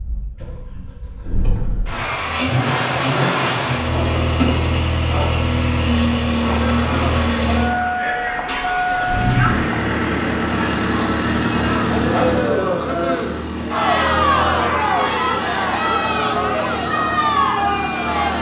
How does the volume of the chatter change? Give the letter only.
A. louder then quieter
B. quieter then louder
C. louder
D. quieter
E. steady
C.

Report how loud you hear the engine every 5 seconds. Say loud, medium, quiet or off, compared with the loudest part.
loud, loud, loud, medium.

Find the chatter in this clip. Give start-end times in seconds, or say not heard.
6.5-18.3.